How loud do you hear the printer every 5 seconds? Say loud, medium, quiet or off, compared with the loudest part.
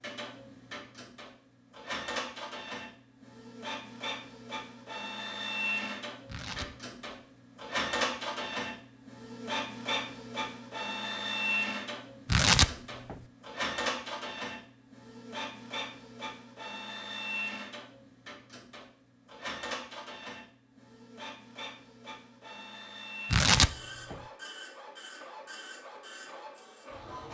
medium, loud, loud, medium, medium, medium.